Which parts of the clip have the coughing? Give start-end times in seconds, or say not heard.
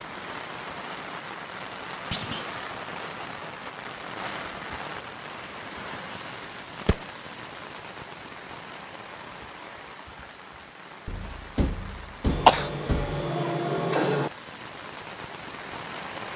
12.2-14.3.